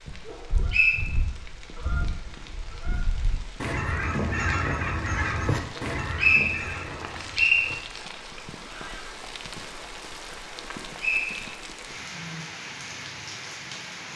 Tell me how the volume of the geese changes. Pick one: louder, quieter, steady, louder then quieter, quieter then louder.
louder then quieter.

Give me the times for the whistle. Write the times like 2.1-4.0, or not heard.
0.3-1.0, 5.8-7.7, 11.0-11.6.